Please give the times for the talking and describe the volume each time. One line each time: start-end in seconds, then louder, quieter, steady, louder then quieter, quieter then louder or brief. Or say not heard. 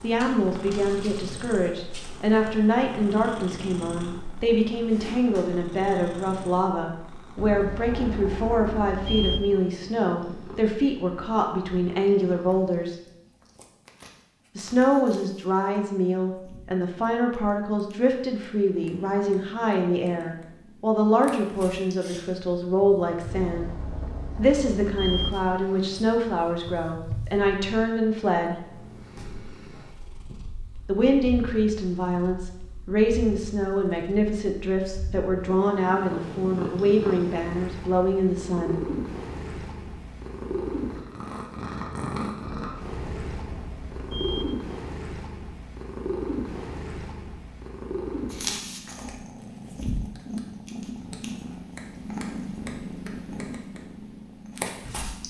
0.0-12.9 steady
14.6-23.7 steady
24.4-28.6 steady
30.9-38.9 steady.